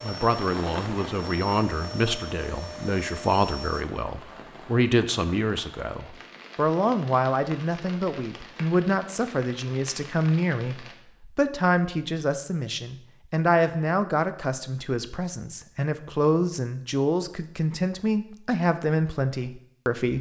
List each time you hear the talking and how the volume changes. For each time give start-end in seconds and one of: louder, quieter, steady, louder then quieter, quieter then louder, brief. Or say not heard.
0.0-20.1 steady.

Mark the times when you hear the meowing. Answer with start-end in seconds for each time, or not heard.
not heard.